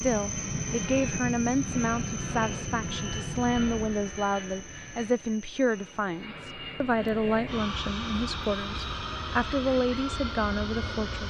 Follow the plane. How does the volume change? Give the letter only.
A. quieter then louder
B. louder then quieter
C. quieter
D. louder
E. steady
A.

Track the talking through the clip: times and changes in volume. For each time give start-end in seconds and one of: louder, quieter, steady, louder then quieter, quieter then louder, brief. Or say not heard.
0.0-11.2 steady.